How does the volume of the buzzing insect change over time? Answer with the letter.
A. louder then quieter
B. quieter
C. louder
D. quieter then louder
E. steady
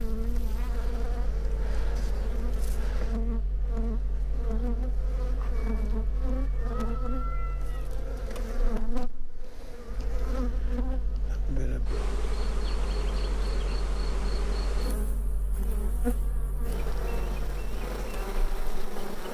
E.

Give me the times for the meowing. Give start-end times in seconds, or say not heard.
5.3-7.9.